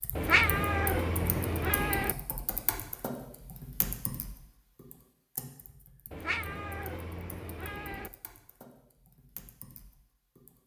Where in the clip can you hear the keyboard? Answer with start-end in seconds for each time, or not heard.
0.0-10.6.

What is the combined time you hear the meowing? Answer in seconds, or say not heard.
4 s.